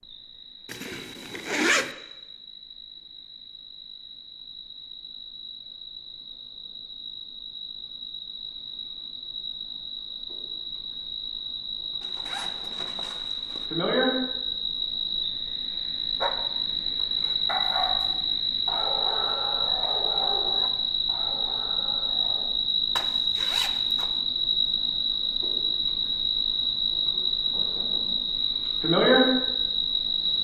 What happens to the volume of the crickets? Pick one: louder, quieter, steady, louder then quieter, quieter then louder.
louder.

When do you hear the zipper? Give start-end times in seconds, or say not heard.
0.7-1.9, 12.0-13.7, 22.9-24.1.